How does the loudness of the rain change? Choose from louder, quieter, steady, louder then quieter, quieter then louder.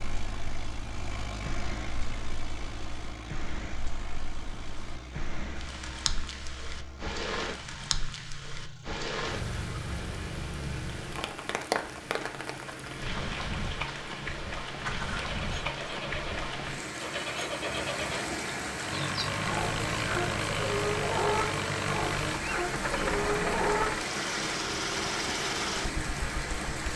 louder.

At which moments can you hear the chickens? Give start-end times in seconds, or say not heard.
19.0-23.9.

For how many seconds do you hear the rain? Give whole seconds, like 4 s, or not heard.
27 s.